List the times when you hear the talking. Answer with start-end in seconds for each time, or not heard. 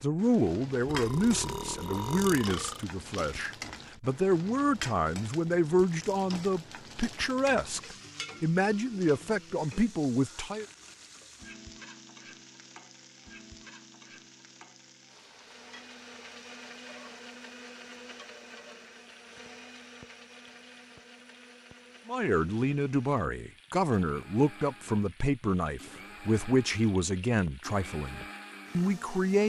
0.0-10.7, 22.1-29.4.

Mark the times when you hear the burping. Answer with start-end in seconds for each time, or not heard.
0.8-2.9.